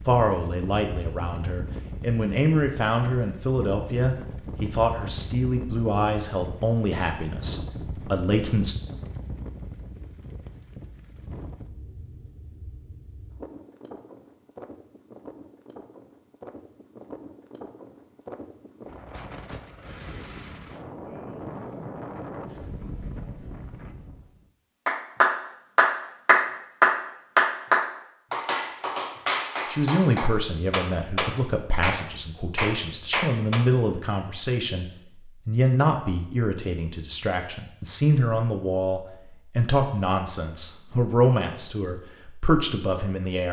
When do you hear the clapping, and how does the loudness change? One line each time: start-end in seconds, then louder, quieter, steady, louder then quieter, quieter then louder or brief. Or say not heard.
24.9-33.6 quieter.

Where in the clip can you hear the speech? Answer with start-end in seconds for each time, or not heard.
0.0-8.8, 29.6-43.4.